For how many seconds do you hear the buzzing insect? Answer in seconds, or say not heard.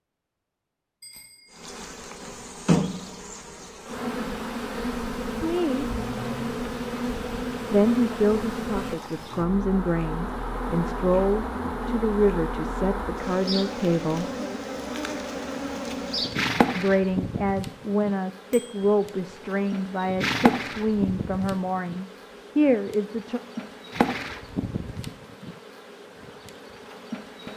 26 s.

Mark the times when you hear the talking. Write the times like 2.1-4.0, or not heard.
5.4-5.9, 7.7-14.2, 16.8-23.4.